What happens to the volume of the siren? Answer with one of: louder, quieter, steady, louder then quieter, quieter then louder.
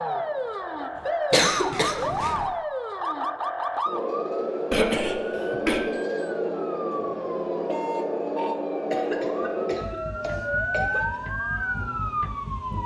steady.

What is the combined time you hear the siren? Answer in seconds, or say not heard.
13 s.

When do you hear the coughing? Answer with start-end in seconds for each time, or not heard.
1.3-2.5, 4.7-5.8, 8.9-11.2.